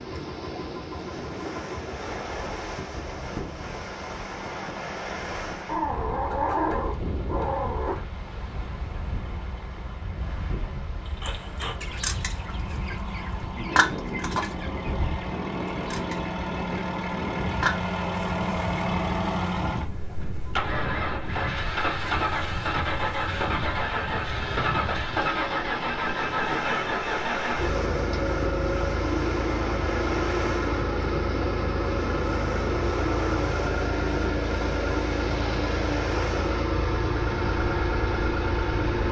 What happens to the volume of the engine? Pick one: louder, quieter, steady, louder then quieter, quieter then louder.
louder.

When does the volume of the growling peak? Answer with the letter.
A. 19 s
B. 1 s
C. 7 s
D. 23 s
C.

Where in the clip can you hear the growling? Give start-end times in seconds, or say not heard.
5.7-8.0.